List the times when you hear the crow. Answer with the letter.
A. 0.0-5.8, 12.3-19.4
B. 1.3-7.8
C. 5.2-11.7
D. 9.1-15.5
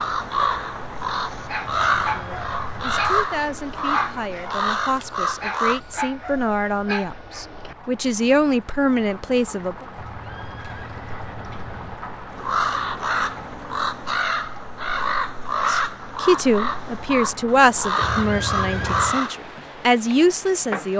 A.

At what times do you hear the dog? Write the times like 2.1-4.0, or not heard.
1.3-7.8.